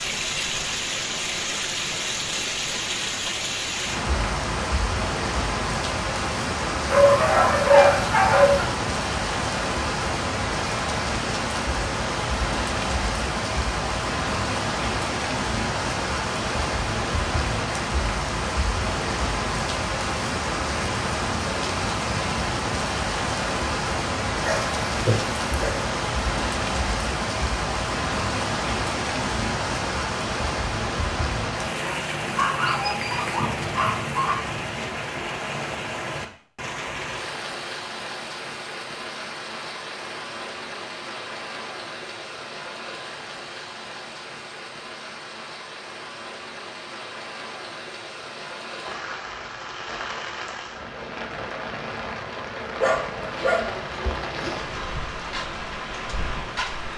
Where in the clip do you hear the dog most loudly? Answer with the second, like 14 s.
8 s.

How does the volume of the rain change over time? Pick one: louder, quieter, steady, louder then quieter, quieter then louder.
quieter.